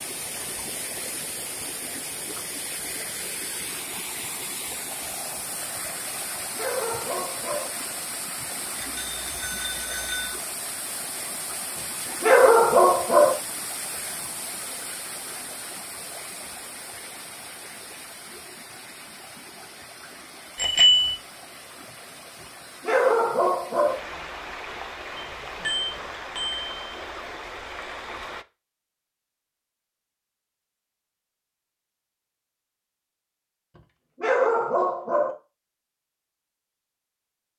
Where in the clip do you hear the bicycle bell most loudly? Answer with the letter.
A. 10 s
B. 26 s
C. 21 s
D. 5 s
C.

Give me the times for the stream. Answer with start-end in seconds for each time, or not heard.
0.0-28.4.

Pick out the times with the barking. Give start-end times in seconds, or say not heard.
6.5-7.7, 12.2-13.3, 22.8-23.9, 34.2-35.4.